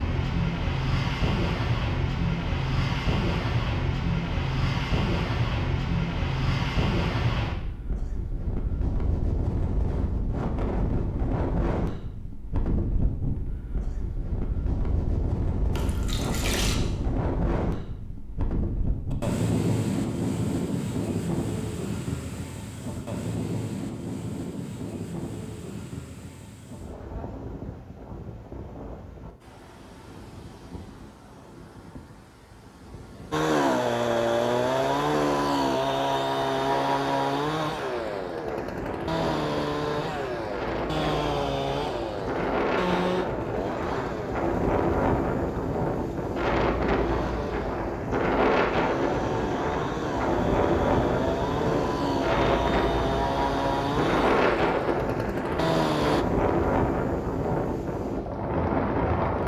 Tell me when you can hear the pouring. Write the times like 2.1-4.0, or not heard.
15.7-16.8.